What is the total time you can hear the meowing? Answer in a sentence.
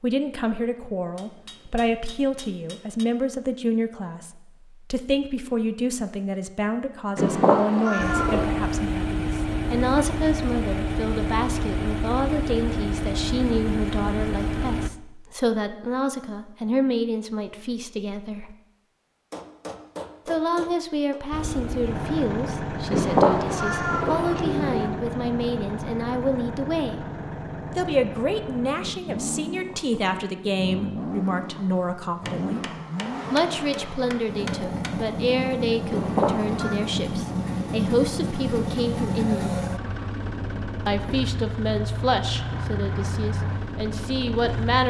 The meowing can be heard for 4 seconds in total.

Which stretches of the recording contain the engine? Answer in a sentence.
You can hear the engine from 8.0 to 14.9 s and from 21.3 to 44.8 s.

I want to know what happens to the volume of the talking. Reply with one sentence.
The volume of the talking stays about the same.